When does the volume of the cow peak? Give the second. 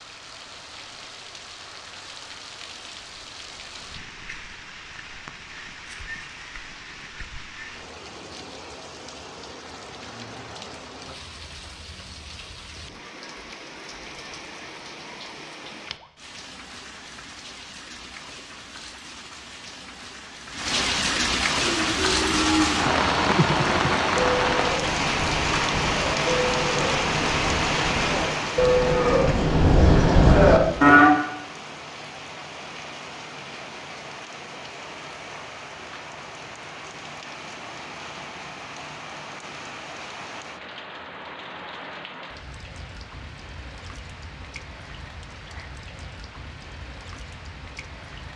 31 s.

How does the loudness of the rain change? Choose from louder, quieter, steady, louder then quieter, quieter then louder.
louder then quieter.